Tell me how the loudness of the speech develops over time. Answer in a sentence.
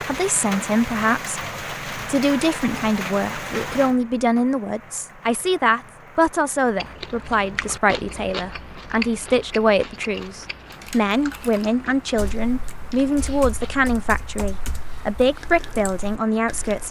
The volume of the speech stays about the same.